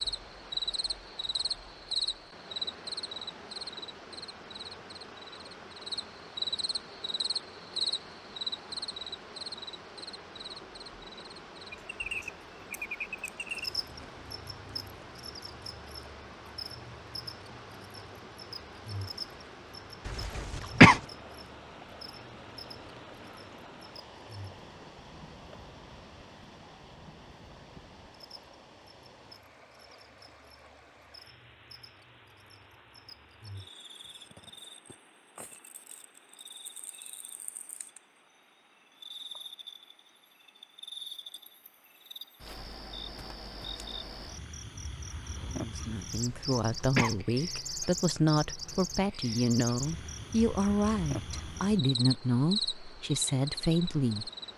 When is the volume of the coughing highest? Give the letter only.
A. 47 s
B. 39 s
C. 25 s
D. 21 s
D.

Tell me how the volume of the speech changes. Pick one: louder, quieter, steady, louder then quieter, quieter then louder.
steady.